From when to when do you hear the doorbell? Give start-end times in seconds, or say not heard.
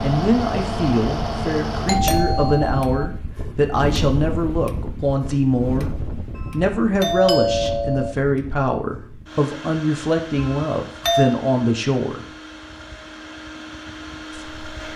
1.9-3.1, 6.3-8.2, 10.3-11.3.